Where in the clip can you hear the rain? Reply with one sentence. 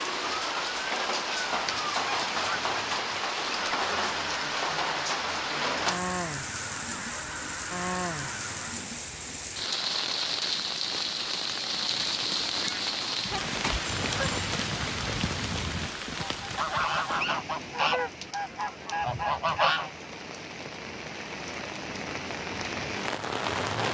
The rain can be heard from 0.0 to 23.8 s.